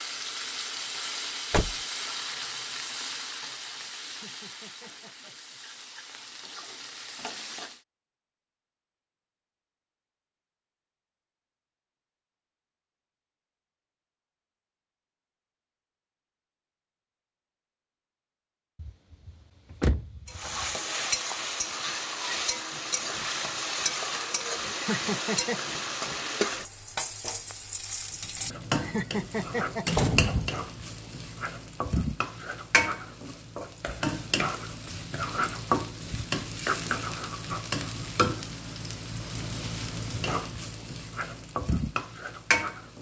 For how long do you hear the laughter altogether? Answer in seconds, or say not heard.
4 s.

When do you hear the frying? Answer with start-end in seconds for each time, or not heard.
0.0-7.8, 20.2-42.9.